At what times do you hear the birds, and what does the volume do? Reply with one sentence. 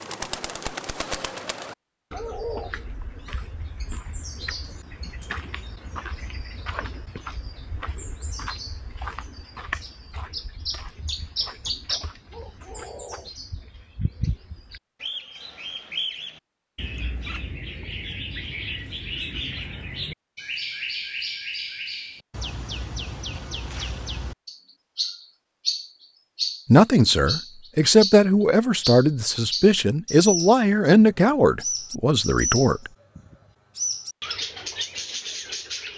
The birds can be heard from 0.0 to 35.9 s, getting louder.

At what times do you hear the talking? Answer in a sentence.
The talking can be heard from 26.6 to 32.9 s.